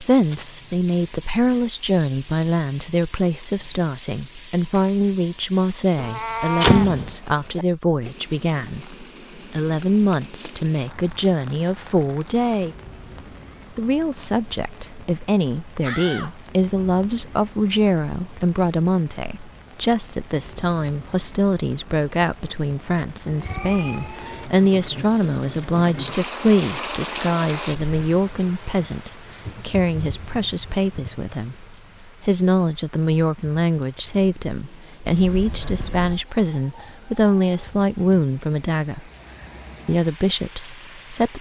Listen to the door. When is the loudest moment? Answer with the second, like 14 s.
7 s.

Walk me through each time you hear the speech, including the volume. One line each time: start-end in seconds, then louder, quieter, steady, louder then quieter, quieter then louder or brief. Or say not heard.
0.0-12.8 steady
13.8-39.1 steady
39.9-41.3 brief.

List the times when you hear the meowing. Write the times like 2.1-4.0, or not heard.
6.0-6.9, 23.3-24.5.